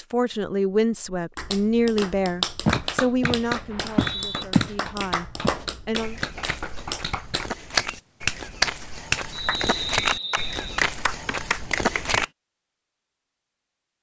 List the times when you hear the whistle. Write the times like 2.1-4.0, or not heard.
3.7-4.5, 9.3-10.8.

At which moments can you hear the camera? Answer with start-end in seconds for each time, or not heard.
not heard.